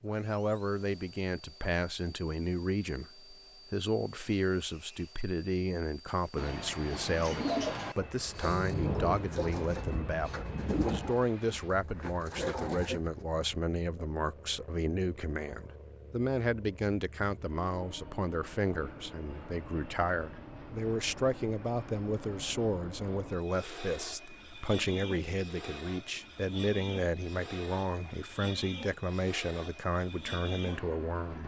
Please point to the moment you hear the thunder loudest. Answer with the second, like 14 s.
9 s.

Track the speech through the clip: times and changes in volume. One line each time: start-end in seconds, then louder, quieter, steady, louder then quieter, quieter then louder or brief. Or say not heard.
0.0-31.4 steady.